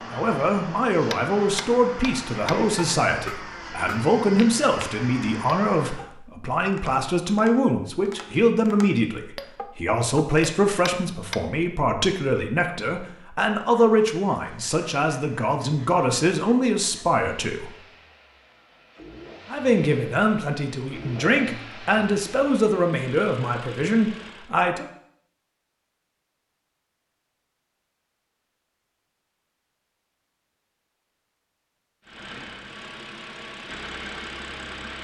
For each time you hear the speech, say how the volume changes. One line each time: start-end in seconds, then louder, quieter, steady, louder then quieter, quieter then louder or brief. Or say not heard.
0.1-17.8 steady
19.5-24.9 steady.